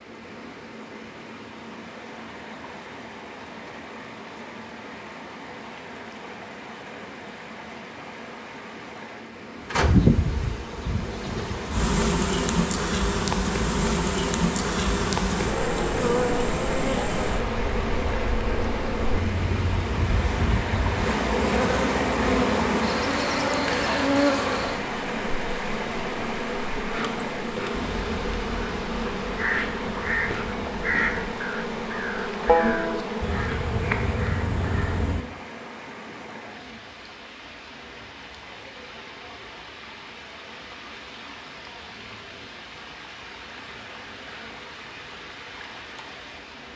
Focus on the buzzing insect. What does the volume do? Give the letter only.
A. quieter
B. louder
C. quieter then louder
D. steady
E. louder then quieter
A.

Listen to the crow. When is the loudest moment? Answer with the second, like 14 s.
33 s.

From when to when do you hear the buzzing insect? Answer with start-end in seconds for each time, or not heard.
9.6-35.3.